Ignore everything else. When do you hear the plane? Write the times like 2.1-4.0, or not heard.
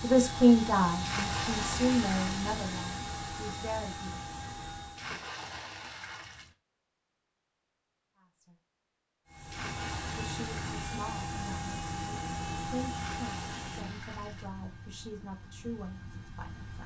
0.0-5.2, 9.2-16.8.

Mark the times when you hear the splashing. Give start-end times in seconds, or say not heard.
1.0-2.5, 5.0-6.5, 9.5-10.9, 12.9-14.5.